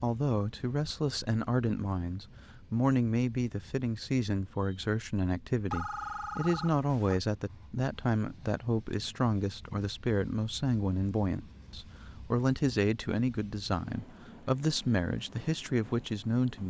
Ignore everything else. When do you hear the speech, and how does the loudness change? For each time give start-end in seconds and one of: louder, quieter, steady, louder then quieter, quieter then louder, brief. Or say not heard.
0.0-16.6 steady.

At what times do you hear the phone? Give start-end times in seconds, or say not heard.
5.7-7.2.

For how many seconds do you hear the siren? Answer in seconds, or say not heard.
not heard.